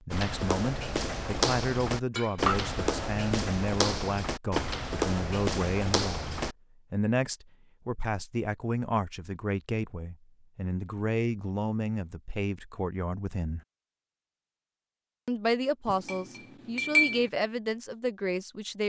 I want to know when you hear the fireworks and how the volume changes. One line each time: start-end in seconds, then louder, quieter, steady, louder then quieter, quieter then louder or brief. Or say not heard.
not heard.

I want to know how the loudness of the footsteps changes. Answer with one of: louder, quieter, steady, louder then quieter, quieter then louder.
steady.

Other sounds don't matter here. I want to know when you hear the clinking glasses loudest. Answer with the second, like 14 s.
17 s.